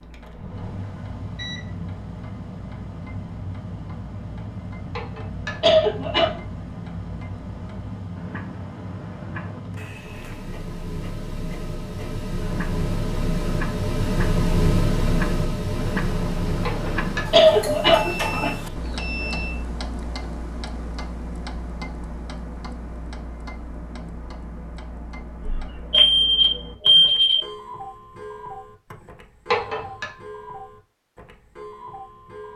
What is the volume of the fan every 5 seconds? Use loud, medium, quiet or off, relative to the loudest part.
medium, medium, loud, loud, off, off, off.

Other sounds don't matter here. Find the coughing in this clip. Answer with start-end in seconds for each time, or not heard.
5.0-6.4, 16.6-18.5, 29.5-30.1.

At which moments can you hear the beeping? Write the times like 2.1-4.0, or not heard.
0.3-1.6, 17.9-19.6, 25.4-27.4.